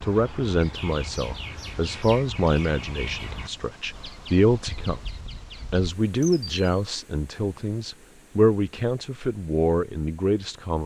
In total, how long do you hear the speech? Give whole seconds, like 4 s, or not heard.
10 s.